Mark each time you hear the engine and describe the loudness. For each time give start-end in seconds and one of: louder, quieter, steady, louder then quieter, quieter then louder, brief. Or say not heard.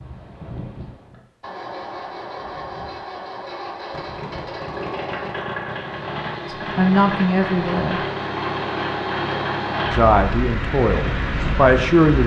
0.0-12.2 louder.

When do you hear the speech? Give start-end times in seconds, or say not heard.
6.5-8.0, 9.9-12.2.